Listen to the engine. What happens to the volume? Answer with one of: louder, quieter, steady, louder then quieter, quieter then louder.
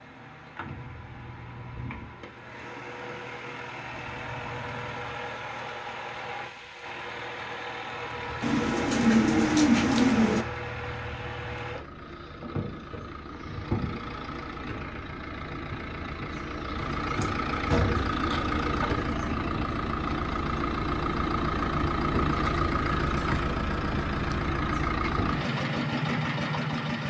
louder.